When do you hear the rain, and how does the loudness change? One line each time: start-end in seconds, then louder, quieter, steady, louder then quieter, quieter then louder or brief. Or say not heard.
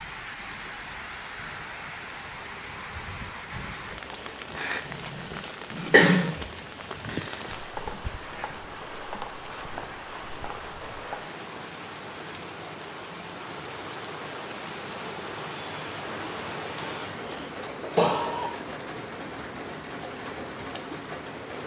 0.0-21.6 steady.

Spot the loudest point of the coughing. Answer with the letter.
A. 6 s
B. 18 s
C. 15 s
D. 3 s
A.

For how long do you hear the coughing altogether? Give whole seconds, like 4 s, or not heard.
3 s.